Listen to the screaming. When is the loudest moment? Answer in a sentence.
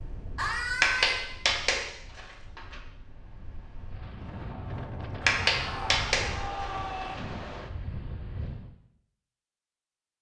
The loudest moment of the screaming is at 1 second.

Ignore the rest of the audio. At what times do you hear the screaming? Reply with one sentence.
The screaming can be heard from 0.3 to 1.2 s and from 5.2 to 7.2 s.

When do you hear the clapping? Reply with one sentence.
You can hear the clapping from 0.8 to 2.8 s and from 5.2 to 7.2 s.